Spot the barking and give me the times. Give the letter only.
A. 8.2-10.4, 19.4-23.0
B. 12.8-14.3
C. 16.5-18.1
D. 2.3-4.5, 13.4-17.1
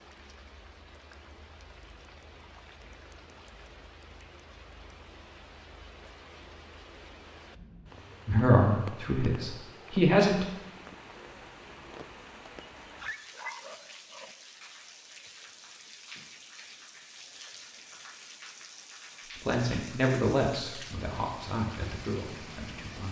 B.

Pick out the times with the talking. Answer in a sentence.
The talking can be heard from 8.2 to 10.4 s and from 19.4 to 23.0 s.